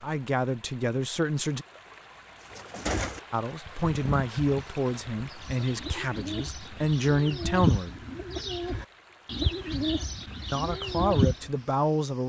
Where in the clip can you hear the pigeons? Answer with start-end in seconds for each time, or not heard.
2.5-11.5.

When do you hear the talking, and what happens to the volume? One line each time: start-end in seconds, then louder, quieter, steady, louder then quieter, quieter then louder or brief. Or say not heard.
0.0-1.6 brief
3.3-8.0 quieter then louder
10.5-12.2 brief.